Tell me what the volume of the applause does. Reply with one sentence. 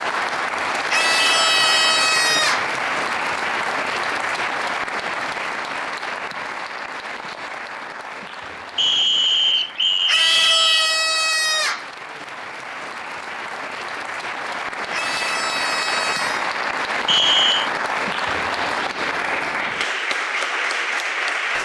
The volume of the applause goes down, then up.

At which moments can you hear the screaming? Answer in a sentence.
The screaming can be heard from 0.9 to 2.7 s, from 10.1 to 11.9 s and from 14.9 to 16.4 s.